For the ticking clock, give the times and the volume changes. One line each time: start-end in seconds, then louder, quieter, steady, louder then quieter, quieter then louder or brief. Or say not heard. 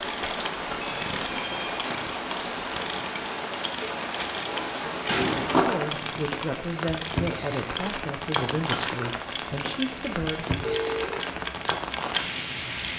0.0-12.9 steady.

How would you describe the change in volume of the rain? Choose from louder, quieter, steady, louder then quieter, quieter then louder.
steady.